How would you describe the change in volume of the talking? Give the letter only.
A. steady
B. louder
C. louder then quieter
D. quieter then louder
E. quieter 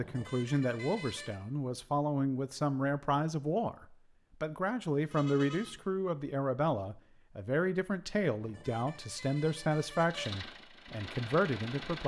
A.